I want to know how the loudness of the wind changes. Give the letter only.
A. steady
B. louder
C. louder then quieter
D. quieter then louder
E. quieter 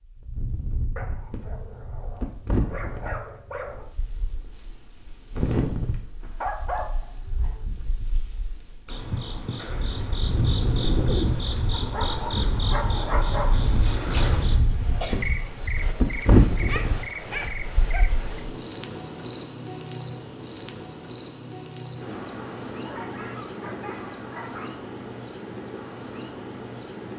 B.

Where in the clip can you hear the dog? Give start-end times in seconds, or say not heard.
0.9-3.9, 6.2-7.6, 11.7-13.6, 16.5-18.1, 22.8-24.8.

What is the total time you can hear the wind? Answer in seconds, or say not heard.
18 s.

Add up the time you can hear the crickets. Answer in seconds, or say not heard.
18 s.